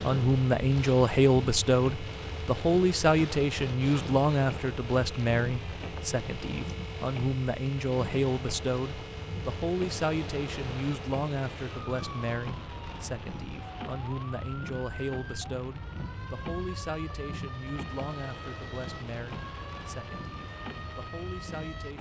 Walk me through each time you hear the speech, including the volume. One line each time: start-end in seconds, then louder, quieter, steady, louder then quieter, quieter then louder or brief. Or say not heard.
0.0-21.9 quieter.